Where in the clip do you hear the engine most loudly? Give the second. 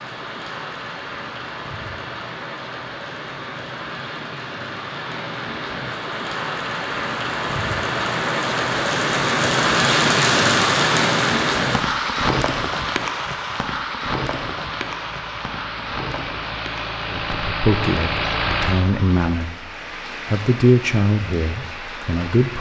18 s.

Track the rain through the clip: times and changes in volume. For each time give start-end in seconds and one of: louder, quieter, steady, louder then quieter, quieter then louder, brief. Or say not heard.
0.0-22.5 louder then quieter.